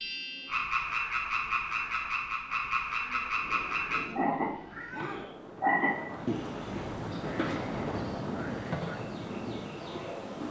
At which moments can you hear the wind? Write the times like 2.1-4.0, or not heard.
3.3-10.4.